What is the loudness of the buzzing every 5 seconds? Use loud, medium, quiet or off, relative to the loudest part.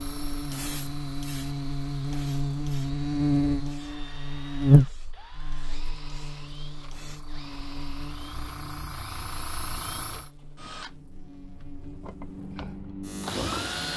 loud, quiet, quiet.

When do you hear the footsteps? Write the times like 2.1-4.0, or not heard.
not heard.